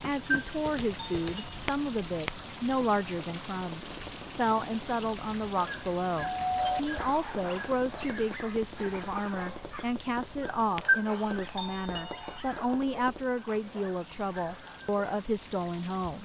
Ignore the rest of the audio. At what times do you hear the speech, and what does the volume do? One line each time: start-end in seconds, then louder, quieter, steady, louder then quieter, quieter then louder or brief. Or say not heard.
0.0-16.2 steady.